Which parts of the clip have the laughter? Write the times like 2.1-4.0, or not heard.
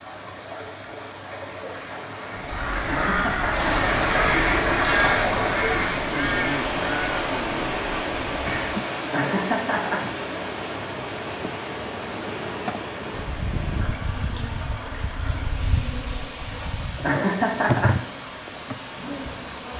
2.9-3.7, 9.1-10.1, 17.0-17.9.